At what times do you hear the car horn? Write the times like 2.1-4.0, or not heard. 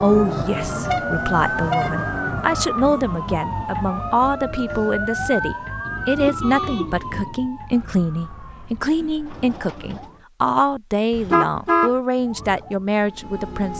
0.6-2.3, 5.8-7.4, 11.2-11.9.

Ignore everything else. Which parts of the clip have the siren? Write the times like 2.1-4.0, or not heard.
0.0-10.2, 12.2-13.7.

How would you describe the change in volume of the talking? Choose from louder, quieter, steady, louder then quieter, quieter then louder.
steady.